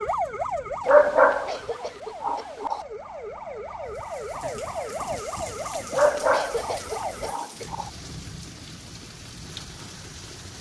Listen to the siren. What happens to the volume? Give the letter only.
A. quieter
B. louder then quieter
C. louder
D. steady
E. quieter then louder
E.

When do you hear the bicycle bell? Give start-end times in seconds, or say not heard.
not heard.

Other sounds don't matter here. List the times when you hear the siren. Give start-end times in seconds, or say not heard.
0.0-7.3.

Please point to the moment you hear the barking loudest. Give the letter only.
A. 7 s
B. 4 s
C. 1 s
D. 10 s
C.